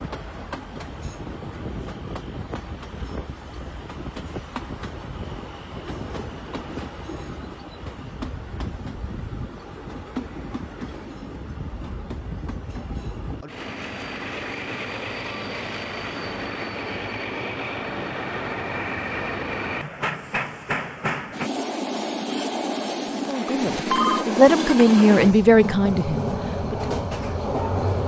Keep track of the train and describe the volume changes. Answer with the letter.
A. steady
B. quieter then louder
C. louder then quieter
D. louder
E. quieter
D.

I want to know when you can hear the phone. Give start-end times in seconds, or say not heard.
23.6-24.2.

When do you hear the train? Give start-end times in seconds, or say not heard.
0.0-28.0.